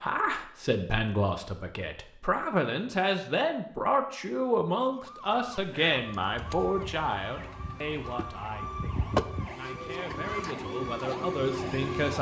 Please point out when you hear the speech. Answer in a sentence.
The speech can be heard from 0.0 to 12.1 s.